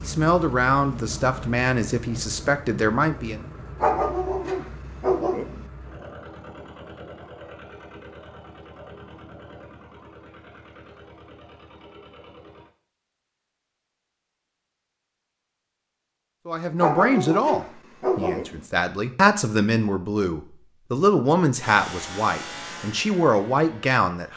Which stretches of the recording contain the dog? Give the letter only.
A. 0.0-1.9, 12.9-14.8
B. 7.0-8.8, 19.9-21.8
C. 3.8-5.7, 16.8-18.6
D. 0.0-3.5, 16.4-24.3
C.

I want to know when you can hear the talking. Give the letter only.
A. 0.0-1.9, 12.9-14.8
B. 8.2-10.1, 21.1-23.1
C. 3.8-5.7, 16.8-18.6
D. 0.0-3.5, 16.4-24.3
D.